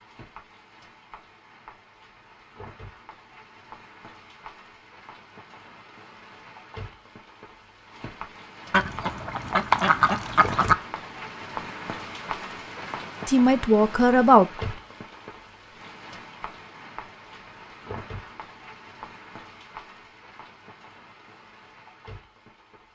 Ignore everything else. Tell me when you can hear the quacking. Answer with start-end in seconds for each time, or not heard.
8.7-10.8.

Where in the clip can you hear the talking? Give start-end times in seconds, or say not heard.
13.2-14.5.